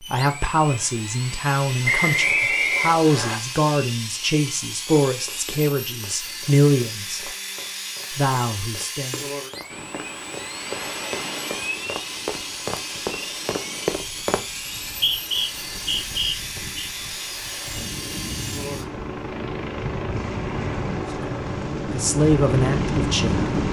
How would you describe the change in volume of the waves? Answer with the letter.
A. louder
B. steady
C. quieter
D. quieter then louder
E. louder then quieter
D.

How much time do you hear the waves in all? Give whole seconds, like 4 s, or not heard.
14 s.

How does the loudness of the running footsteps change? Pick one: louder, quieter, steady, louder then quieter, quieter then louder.
louder.